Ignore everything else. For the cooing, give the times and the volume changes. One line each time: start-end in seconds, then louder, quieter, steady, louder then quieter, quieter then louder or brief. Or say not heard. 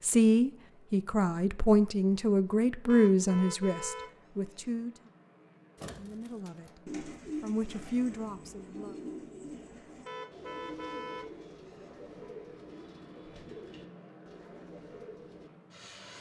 5.8-15.5 quieter.